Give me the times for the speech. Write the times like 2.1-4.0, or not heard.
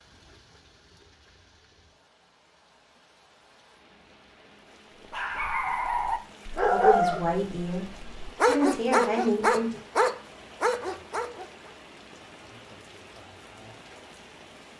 6.7-9.8.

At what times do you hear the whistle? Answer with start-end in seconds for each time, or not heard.
not heard.